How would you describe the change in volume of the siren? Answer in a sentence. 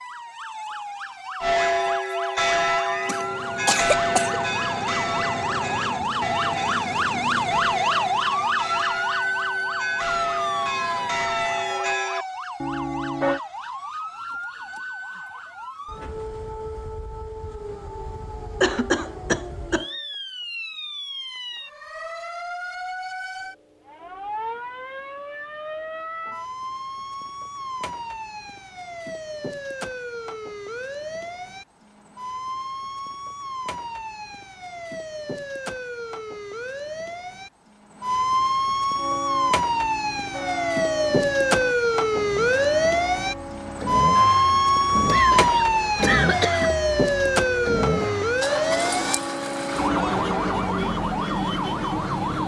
The volume of the siren goes down, then up.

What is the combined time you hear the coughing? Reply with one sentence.
The coughing can be heard for 4 seconds in total.